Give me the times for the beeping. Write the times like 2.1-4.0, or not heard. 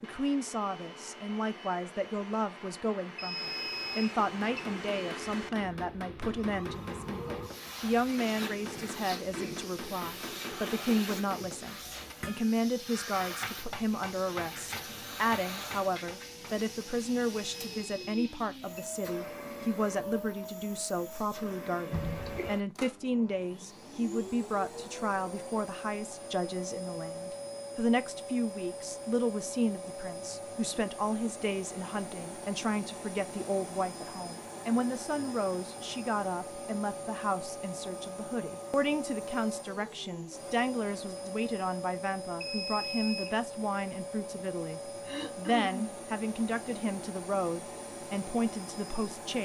3.1-4.7, 17.6-18.9, 42.4-43.3.